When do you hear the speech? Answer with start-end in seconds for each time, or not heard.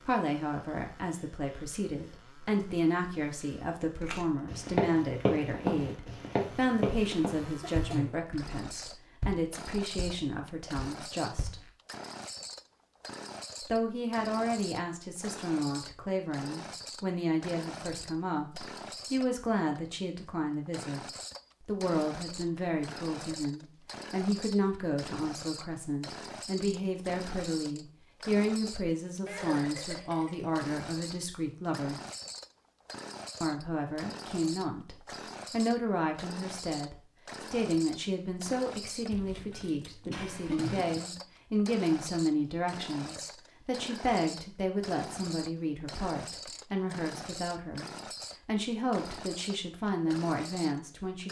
0.1-11.6, 13.6-21.0, 21.6-32.0, 33.4-51.2.